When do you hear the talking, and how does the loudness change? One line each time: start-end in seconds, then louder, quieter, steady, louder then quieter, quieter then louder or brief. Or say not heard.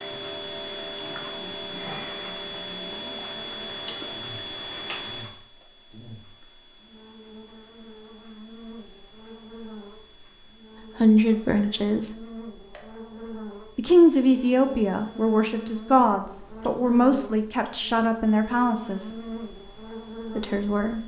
10.8-12.2 brief
13.8-19.1 steady
20.4-21.0 brief.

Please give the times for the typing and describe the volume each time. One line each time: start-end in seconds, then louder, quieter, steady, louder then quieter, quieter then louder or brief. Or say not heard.
not heard.